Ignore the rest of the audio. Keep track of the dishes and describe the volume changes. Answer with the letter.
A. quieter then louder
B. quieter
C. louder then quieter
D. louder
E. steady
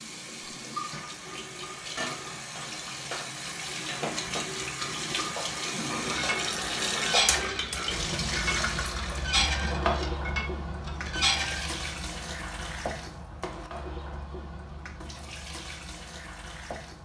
D.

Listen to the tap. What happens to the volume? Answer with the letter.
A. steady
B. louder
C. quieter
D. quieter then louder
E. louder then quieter
E.